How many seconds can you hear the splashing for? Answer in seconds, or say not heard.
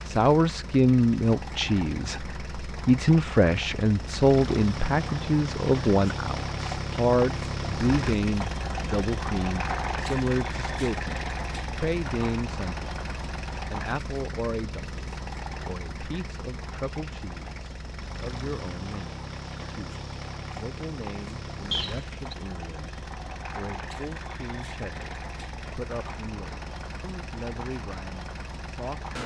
not heard.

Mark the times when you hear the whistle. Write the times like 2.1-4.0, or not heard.
21.7-22.2.